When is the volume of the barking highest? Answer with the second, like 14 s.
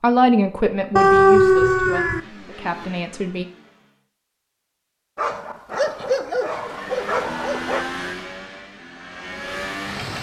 1 s.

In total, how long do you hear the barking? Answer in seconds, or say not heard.
4 s.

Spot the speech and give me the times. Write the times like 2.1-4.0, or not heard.
0.0-3.5.